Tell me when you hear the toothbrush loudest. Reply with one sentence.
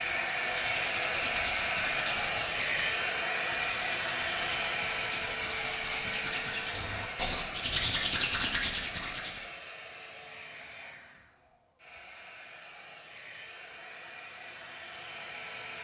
The loudest moment of the toothbrush is at 8 seconds.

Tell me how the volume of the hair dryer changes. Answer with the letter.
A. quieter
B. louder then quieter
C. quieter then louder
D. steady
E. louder
A.